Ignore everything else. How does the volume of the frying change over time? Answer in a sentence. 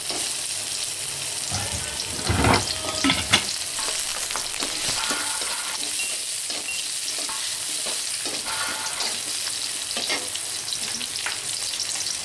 The loudness of the frying stays about the same.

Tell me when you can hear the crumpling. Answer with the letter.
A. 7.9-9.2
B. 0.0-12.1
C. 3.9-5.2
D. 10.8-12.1
C.